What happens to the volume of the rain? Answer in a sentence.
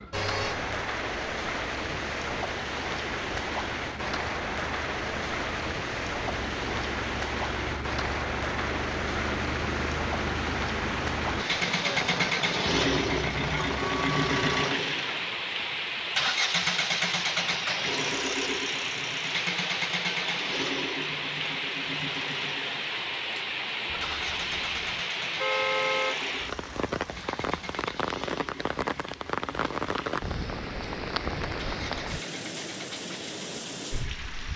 The loudness of the rain stays about the same.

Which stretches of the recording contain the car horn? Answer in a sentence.
The car horn can be heard from 0.1 to 0.7 s, from 12.7 to 14.7 s and from 23.9 to 26.1 s.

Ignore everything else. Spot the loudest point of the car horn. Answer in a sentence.
The volume of the car horn peaks at 26 seconds.